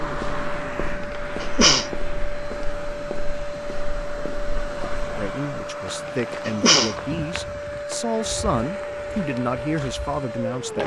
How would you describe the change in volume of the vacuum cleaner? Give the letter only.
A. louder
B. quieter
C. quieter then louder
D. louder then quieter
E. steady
E.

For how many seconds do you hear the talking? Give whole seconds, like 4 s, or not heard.
6 s.